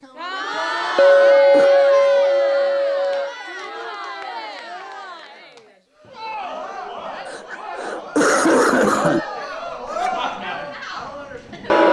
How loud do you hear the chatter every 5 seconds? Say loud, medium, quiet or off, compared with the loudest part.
medium, medium, loud.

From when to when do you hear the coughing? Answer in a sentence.
You can hear the coughing from 0.7 to 1.7 s and from 7.2 to 9.2 s.